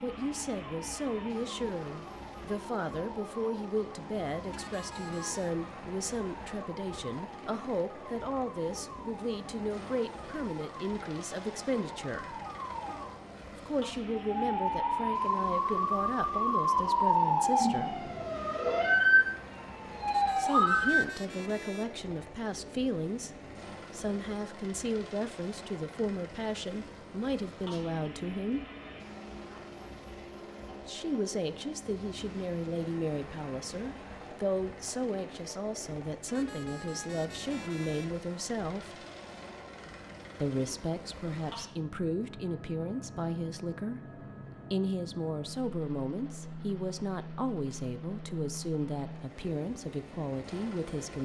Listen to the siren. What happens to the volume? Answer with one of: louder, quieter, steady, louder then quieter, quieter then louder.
louder.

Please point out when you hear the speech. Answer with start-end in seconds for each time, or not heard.
0.0-12.3, 13.5-18.1, 20.4-28.6, 30.9-39.0, 40.4-51.2.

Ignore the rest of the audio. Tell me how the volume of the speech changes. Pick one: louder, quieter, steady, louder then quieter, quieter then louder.
steady.